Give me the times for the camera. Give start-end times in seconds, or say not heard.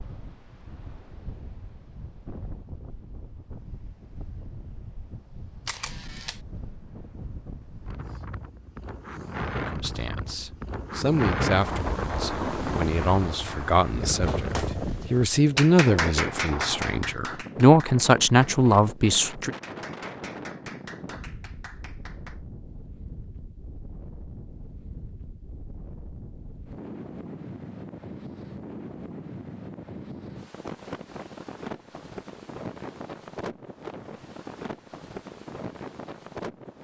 5.7-6.4.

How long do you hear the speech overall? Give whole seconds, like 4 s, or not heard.
10 s.